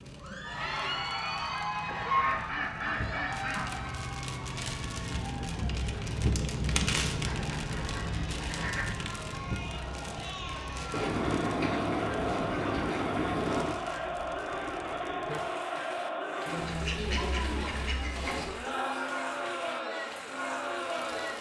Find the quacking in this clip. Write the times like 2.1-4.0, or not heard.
1.9-3.8, 7.2-8.9, 10.9-13.8, 16.4-18.4.